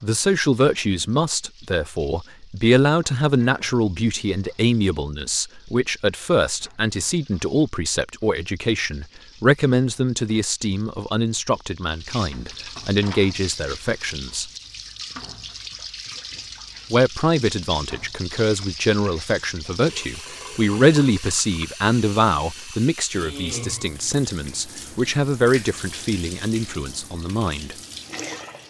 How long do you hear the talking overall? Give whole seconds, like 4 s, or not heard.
25 s.